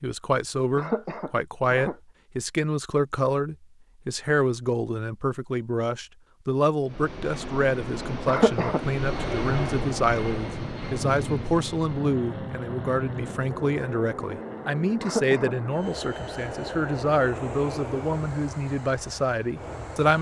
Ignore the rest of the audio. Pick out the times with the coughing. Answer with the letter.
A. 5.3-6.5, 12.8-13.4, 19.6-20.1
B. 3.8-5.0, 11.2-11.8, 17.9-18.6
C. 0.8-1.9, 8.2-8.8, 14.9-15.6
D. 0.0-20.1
C.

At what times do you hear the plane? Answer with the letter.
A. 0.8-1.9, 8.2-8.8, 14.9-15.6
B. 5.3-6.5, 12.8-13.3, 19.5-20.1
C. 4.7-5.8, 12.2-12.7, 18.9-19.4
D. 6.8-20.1
D.